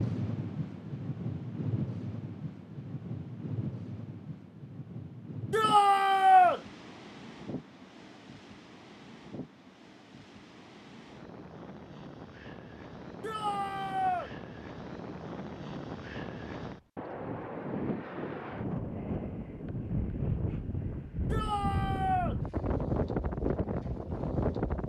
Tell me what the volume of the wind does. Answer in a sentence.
The loudness of the wind goes down, then up.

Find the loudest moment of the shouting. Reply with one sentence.
The volume of the shouting peaks at 6 seconds.